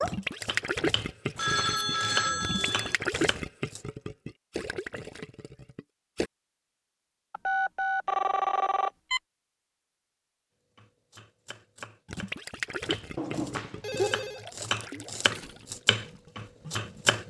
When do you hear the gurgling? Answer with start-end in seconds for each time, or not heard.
0.0-6.3, 12.1-17.2.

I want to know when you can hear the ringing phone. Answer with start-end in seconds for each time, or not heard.
1.4-3.0, 7.3-9.2, 13.2-14.4.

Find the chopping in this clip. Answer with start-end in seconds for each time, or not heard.
0.0-3.8, 10.8-17.2.